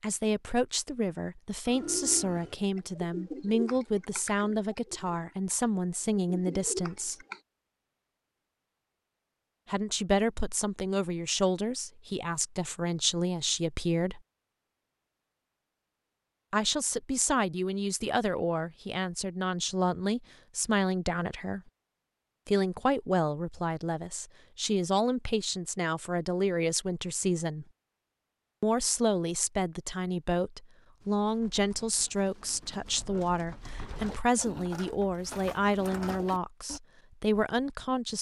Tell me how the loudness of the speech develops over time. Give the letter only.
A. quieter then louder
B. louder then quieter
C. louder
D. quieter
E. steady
E.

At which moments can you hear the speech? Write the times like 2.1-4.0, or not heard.
0.0-7.2, 9.7-14.2, 16.5-21.6, 22.4-27.6, 28.6-38.1.